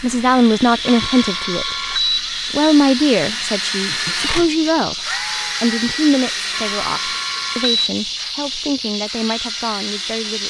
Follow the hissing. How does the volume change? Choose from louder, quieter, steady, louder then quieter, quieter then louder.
steady.